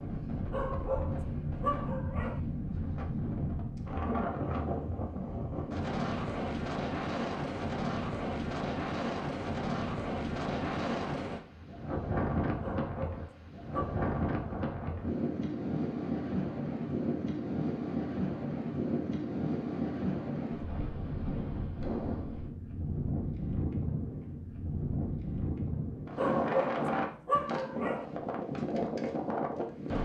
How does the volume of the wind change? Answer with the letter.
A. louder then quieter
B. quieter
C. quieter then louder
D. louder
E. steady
E.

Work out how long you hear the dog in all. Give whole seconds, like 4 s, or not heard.
5 s.